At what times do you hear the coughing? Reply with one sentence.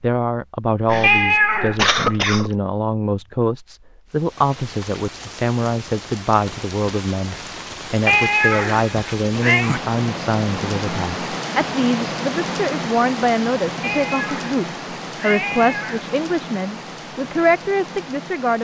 The coughing can be heard from 0.8 to 2.5 s.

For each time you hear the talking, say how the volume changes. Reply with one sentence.
The talking can be heard from 0.0 to 18.5 s, at a steady volume.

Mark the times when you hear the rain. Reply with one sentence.
The rain can be heard from 4.0 to 18.5 s.